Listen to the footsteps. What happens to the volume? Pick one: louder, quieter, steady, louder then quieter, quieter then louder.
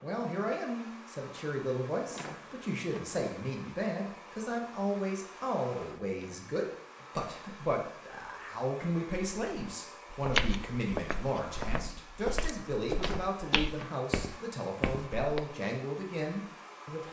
quieter then louder.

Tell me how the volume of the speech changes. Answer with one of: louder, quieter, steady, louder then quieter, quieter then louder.
steady.